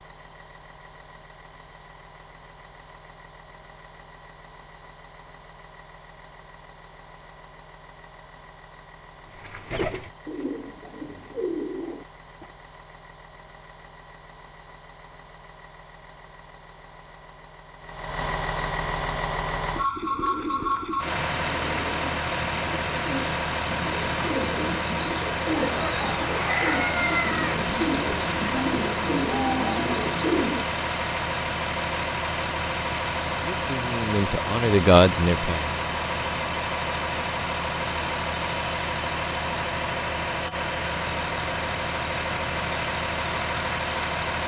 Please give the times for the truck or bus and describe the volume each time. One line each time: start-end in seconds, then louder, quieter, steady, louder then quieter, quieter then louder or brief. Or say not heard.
0.0-44.4 louder.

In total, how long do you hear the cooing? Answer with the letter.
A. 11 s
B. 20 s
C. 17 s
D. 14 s
D.